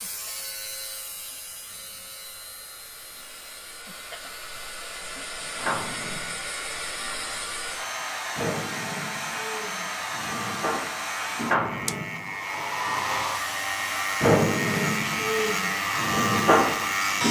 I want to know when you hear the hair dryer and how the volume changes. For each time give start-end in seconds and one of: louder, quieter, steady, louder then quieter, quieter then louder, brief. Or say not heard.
0.0-17.2 louder.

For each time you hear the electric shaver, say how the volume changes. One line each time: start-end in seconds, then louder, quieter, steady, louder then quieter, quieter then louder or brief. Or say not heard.
0.0-17.2 louder.